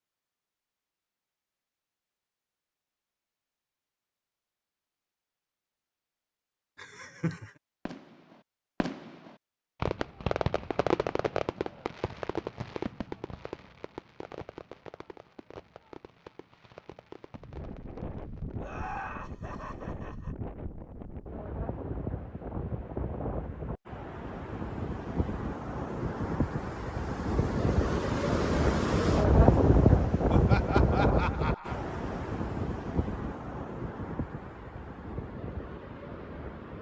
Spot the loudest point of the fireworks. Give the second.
11 s.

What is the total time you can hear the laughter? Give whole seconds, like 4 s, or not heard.
4 s.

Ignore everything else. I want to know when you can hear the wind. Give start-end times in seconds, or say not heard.
17.4-36.7.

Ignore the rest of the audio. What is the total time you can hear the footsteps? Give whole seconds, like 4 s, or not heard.
not heard.